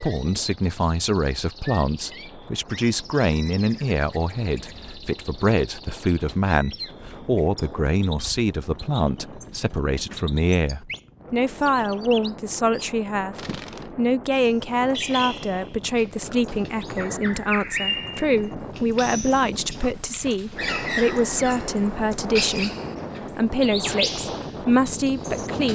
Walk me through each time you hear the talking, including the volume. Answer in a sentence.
You can hear the talking from 0.0 to 22.7 s, at a steady volume; and briefly from 23.3 to 25.7 s.